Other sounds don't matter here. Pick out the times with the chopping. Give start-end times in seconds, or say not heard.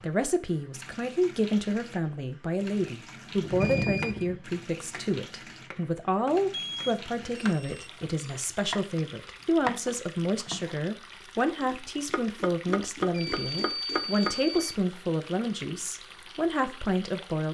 3.4-9.0, 9.7-10.8, 11.6-14.6.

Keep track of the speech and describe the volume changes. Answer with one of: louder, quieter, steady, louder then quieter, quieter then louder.
steady.